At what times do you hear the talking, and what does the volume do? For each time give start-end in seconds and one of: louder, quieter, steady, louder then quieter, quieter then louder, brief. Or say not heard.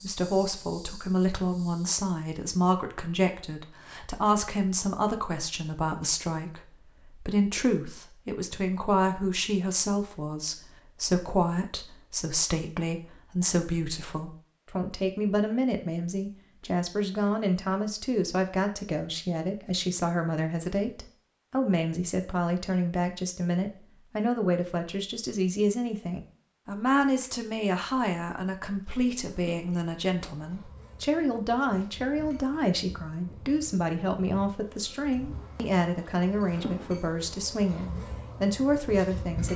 0.0-39.5 steady.